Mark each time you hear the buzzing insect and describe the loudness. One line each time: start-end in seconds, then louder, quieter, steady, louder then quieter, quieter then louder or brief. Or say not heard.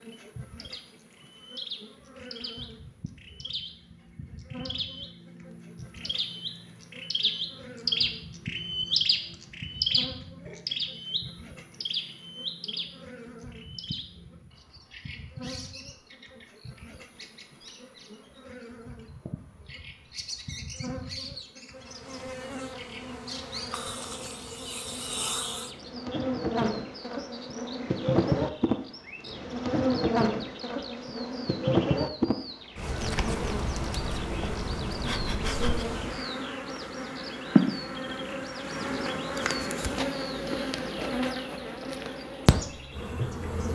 0.0-43.6 louder.